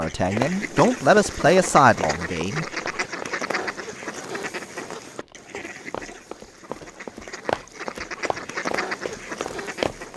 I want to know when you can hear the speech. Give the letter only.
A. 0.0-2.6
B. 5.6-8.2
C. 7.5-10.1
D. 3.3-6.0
A.